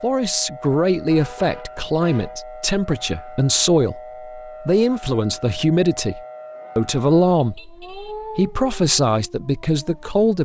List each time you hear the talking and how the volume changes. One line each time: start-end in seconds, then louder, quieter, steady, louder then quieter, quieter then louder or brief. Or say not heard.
0.0-10.3 steady.